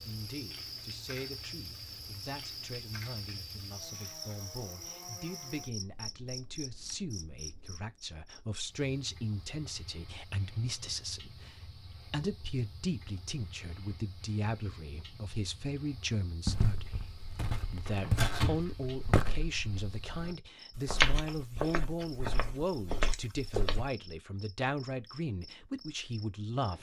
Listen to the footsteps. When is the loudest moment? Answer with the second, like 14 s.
21 s.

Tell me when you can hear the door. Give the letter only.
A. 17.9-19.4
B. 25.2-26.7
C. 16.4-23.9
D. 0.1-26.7
A.